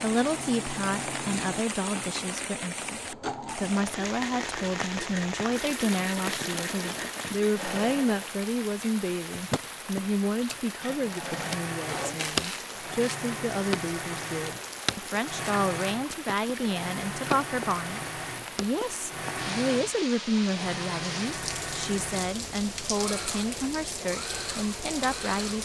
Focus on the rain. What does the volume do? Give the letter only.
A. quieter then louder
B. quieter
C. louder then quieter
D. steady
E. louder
D.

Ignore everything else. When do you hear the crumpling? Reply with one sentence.
You can hear the crumpling from 11.8 to 13.2 s.